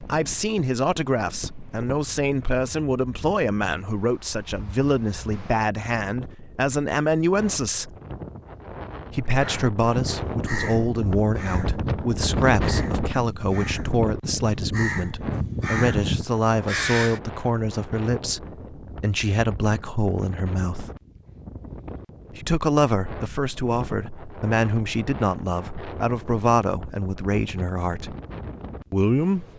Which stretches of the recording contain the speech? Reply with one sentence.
The speech can be heard from 0.0 to 8.0 s, from 9.1 to 20.9 s, from 22.3 to 28.1 s and from 28.9 to 29.5 s.